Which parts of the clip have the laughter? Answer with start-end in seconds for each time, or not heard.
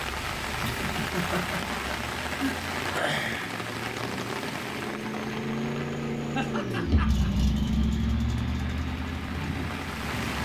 0.2-2.5, 6.3-7.3.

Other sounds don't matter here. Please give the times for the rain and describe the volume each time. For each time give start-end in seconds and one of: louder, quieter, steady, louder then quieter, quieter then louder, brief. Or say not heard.
0.0-10.3 quieter then louder.